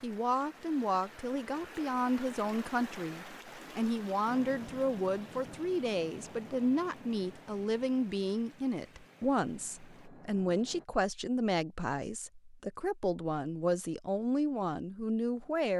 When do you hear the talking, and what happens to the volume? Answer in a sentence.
The talking can be heard from 0.0 to 15.7 s, at a steady volume.